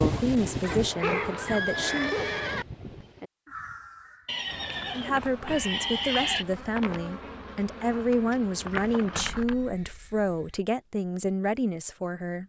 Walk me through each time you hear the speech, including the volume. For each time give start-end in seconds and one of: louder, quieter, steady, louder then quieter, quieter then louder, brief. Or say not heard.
0.0-2.2 brief
4.9-12.4 steady.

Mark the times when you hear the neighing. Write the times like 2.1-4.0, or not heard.
0.6-2.6, 4.2-6.5, 9.4-10.6.